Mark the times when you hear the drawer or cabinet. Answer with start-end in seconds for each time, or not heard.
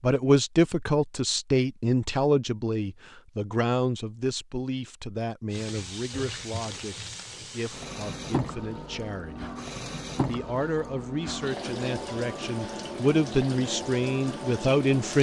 not heard.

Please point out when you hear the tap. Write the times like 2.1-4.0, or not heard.
5.5-15.1.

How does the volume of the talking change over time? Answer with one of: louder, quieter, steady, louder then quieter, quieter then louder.
quieter then louder.